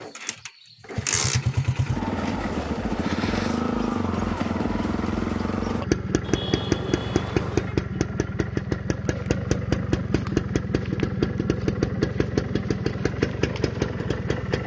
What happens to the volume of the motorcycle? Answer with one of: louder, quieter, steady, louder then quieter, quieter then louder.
steady.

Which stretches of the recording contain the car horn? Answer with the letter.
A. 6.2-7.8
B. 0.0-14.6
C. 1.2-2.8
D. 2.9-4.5
A.